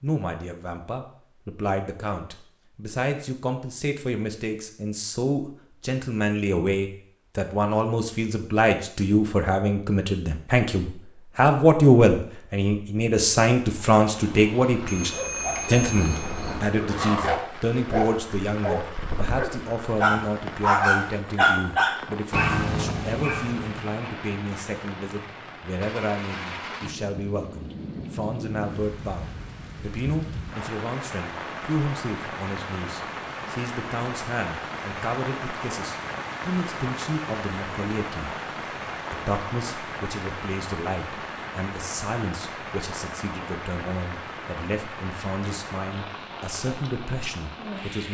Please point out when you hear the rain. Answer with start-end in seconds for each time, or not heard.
13.6-48.1.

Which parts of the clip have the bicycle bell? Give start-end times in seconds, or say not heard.
14.8-16.7.